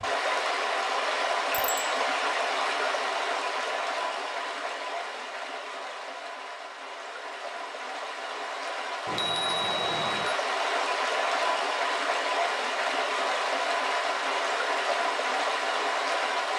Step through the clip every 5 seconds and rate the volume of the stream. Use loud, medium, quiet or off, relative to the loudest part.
loud, medium, loud, loud.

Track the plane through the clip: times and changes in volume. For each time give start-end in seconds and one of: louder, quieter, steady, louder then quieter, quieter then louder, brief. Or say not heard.
not heard.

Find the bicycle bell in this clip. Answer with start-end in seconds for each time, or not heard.
1.5-1.9, 9.1-10.3.